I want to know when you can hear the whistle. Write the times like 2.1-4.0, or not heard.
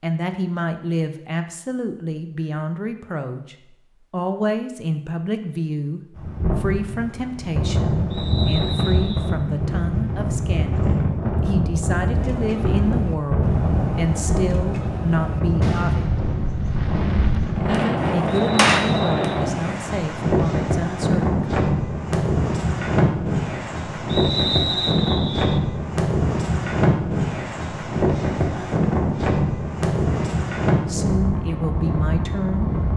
8.1-9.3, 18.3-19.5, 24.1-25.6.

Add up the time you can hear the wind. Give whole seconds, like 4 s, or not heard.
27 s.